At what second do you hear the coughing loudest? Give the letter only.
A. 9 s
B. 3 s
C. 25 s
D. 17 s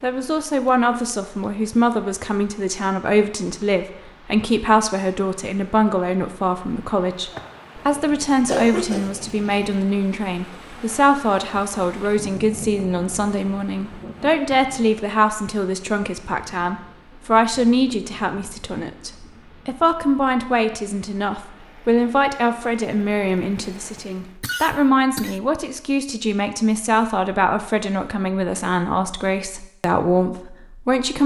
A.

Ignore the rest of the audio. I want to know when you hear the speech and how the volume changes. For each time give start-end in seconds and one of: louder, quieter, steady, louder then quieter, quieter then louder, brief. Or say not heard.
0.0-31.2 steady.